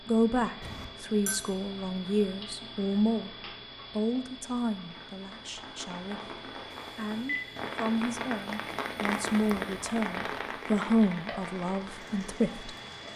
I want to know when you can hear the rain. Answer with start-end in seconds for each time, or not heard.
4.7-13.1.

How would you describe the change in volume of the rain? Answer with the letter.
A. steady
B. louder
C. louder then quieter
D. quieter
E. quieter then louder
C.